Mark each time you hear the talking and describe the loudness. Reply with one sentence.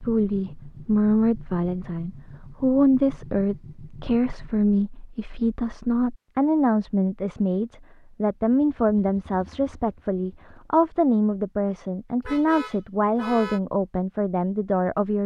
The talking can be heard from 0.0 to 15.2 s, at a steady volume.